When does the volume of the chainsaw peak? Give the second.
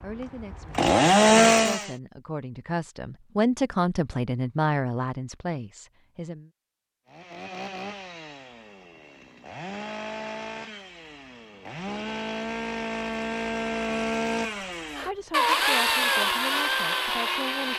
1 s.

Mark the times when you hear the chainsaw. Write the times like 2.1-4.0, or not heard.
0.0-1.9, 7.0-17.7.